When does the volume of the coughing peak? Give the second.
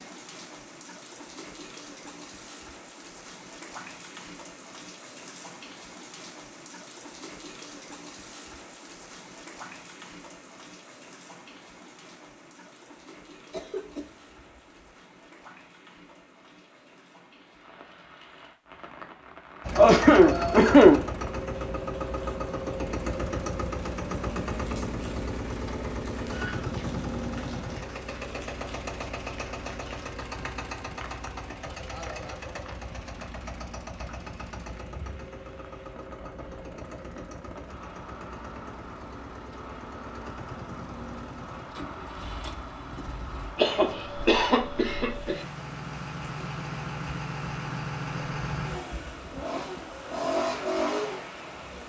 21 s.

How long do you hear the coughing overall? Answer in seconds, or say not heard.
4 s.